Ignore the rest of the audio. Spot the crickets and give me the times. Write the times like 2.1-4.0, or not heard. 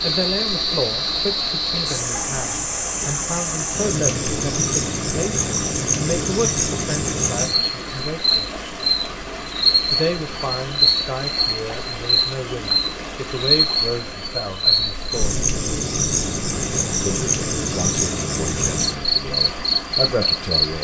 0.0-20.7.